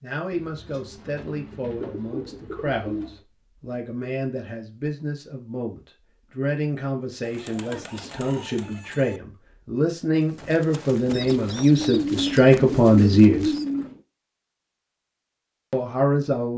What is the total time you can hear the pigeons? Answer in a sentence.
The pigeons can be heard for 8 seconds in total.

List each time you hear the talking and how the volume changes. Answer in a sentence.
You can hear the talking from 0.0 to 13.5 s, getting louder; and briefly from 15.7 to 16.5 s.